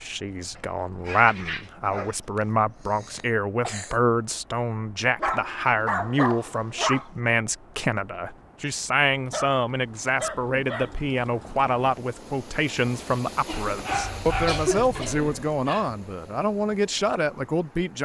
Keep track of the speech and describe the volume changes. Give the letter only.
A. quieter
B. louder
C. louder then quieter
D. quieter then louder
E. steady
E.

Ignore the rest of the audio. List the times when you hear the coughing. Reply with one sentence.
The coughing can be heard from 2.4 to 4.0 s, from 6.2 to 7.1 s and from 13.4 to 15.4 s.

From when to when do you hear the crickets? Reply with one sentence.
You can't hear the crickets here.